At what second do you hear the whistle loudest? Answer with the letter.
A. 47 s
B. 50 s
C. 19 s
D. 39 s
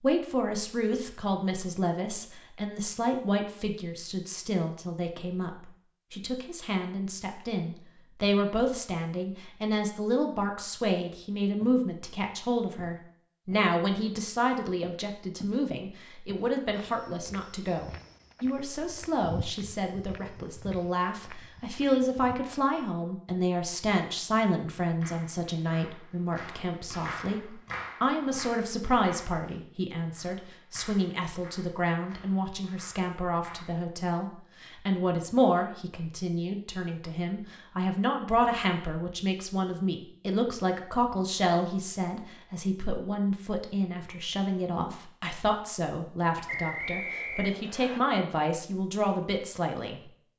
A.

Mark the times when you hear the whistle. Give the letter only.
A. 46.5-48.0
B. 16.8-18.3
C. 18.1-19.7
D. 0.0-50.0
A.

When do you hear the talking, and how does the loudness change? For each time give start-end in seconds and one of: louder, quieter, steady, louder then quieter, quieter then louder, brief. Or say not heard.
0.0-50.0 steady.